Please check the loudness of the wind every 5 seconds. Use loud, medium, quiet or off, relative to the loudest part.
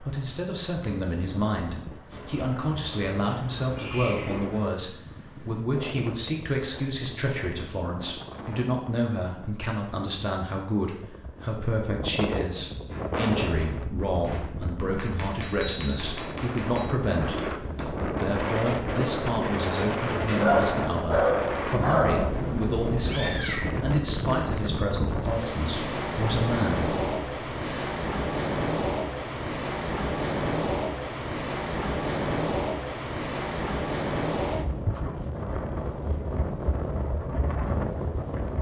quiet, quiet, medium, loud, loud, loud, loud, loud.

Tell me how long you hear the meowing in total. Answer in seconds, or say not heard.
3 s.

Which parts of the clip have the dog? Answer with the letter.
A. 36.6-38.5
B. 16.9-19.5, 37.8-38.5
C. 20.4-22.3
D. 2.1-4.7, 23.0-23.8
C.